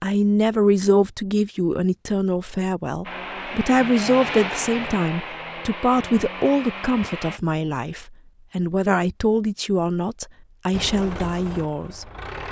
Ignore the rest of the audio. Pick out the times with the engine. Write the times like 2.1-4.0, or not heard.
3.0-7.4, 10.7-12.4.